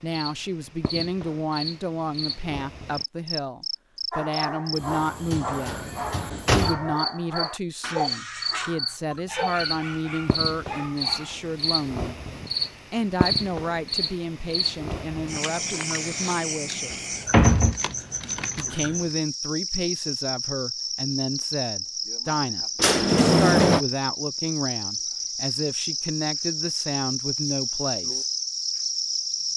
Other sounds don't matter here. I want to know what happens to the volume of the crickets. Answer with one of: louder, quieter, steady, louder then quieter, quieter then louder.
louder.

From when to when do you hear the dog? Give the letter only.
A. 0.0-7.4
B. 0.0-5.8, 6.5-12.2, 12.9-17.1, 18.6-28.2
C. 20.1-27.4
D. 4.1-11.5
D.